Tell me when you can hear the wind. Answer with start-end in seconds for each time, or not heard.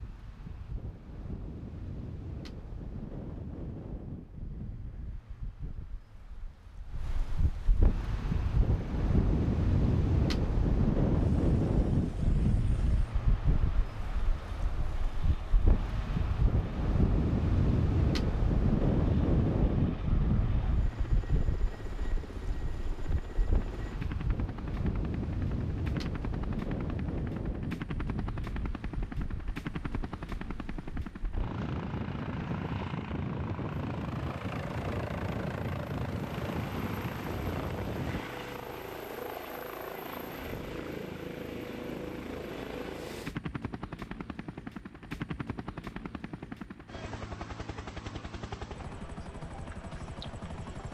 0.0-38.2.